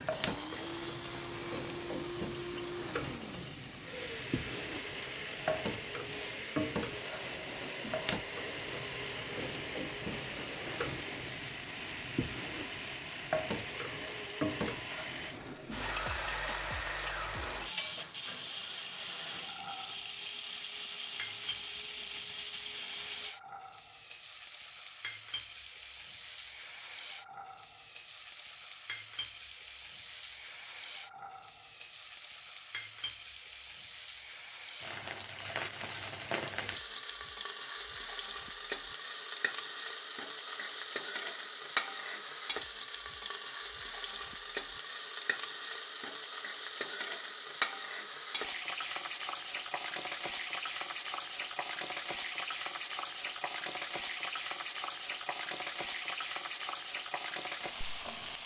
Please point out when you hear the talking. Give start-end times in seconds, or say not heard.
not heard.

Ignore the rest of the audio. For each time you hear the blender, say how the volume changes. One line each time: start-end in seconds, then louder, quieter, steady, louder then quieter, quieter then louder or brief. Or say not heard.
0.0-23.4 steady.